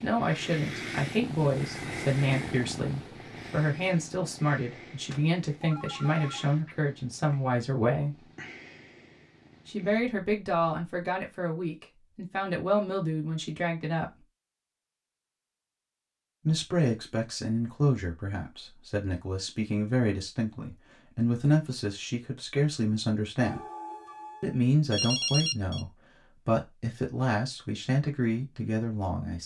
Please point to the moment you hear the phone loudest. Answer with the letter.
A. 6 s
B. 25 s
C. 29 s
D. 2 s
B.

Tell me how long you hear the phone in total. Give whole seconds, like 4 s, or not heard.
4 s.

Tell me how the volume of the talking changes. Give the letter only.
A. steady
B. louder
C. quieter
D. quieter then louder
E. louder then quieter
A.